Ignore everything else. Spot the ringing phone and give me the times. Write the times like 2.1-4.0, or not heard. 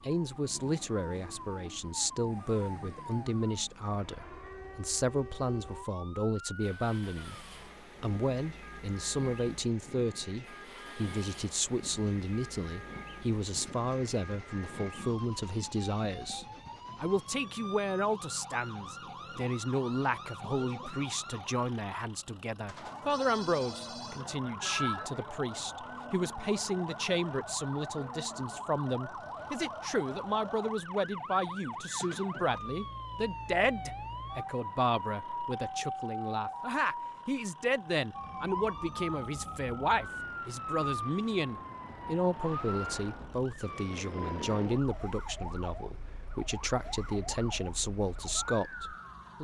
22.6-25.1.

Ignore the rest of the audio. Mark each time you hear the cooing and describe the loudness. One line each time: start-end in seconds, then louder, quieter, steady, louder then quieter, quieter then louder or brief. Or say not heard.
not heard.